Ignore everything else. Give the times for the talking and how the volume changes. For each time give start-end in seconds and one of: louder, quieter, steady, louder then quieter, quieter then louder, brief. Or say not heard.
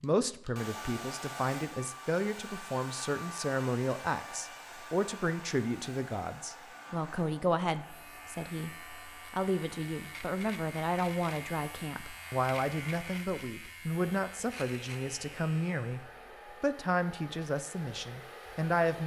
0.0-19.0 steady.